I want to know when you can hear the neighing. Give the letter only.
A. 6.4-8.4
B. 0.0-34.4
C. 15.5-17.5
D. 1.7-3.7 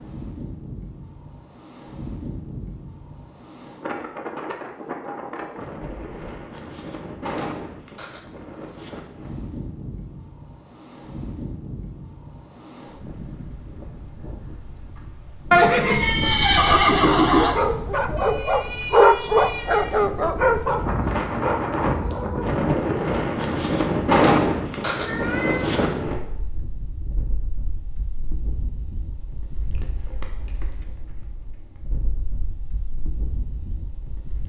C.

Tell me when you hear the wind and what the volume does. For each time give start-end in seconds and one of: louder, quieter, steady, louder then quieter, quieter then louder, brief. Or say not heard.
0.0-34.4 louder then quieter.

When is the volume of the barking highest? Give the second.
19 s.